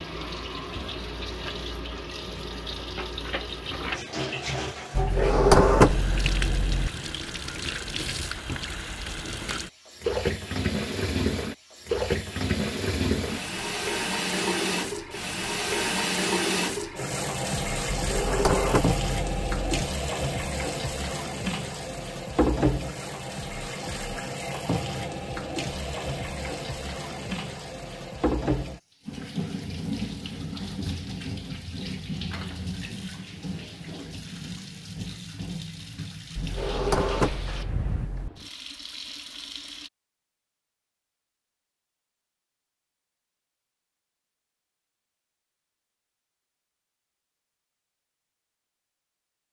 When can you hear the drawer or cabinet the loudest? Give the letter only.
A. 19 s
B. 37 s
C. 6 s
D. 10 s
C.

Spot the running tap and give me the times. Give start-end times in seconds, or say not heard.
0.0-39.9.